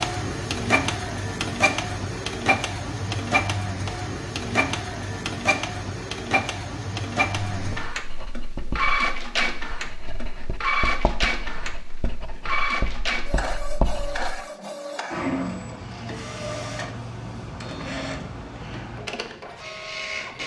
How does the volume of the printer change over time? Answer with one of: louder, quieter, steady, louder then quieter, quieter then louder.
quieter.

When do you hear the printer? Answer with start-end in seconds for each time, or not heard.
0.0-20.4.